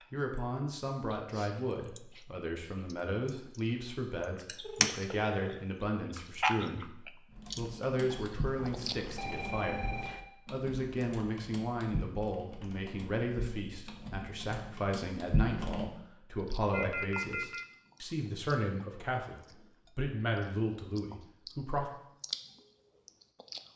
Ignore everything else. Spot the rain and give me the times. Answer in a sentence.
The rain can't be heard in this clip.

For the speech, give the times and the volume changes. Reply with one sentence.
You can hear the speech from 0.1 to 21.9 s, at a steady volume.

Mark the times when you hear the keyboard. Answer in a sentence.
You can hear the keyboard from 7.3 to 15.9 s.